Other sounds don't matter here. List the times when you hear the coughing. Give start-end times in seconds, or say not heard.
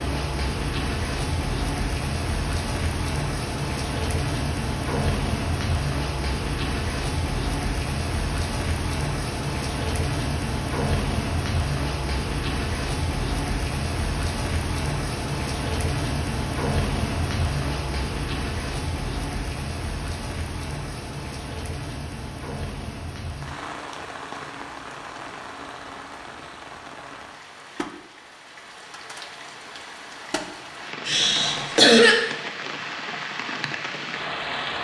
31.1-32.1.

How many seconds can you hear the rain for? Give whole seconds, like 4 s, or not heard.
35 s.